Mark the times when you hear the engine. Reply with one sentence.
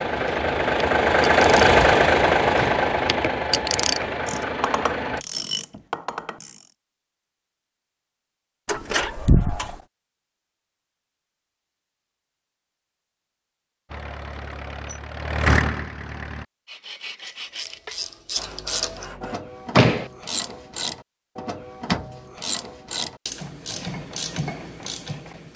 You can hear the engine from 0.0 to 5.2 s and from 13.8 to 16.4 s.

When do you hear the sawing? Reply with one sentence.
The sawing can be heard from 16.6 to 19.4 s.